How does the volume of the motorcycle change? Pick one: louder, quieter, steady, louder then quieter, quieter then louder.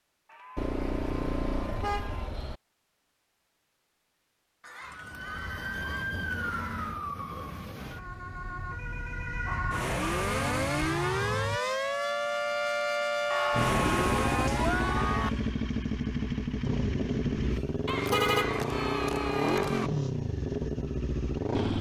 steady.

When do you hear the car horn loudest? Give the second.
18 s.